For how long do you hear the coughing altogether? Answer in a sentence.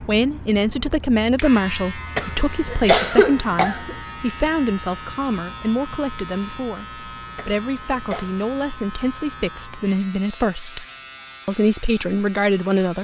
The coughing can be heard for 3 seconds in total.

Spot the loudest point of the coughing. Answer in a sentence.
The volume of the coughing peaks at 3 seconds.